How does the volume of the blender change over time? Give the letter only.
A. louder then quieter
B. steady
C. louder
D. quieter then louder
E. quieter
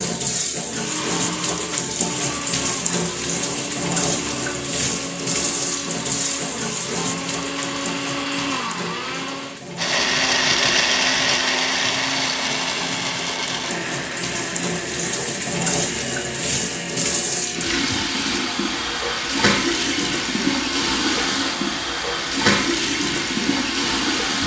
A.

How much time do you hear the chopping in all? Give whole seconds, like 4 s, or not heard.
not heard.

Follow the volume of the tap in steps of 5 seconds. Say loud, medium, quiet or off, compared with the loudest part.
loud, medium, medium, loud, loud.